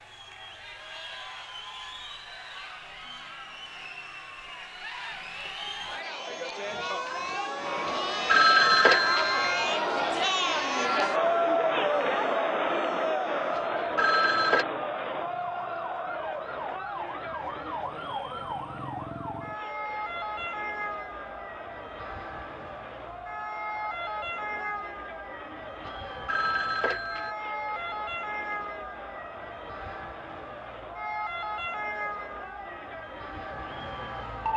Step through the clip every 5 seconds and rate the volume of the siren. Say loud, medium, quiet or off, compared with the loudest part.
off, loud, medium, loud, loud, loud, loud.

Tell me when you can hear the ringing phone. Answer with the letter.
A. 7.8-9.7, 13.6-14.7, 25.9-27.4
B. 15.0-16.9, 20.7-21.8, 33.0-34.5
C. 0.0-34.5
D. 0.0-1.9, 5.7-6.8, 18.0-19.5
A.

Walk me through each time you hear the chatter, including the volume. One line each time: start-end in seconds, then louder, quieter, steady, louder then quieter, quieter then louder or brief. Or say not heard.
0.0-34.5 louder then quieter.